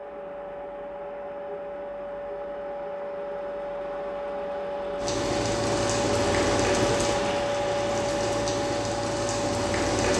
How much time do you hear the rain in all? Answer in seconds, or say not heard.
5 s.